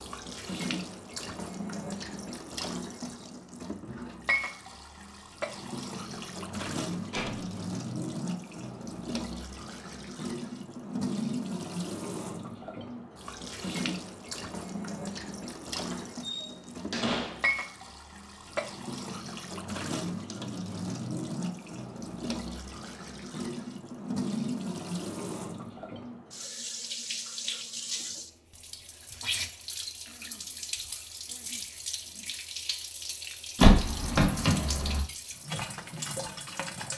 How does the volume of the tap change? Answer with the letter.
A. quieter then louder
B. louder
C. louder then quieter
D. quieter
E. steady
E.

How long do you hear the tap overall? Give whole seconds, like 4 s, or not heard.
37 s.